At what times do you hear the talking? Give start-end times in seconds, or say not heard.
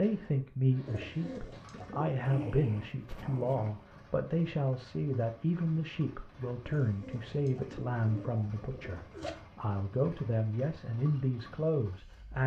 0.0-12.4.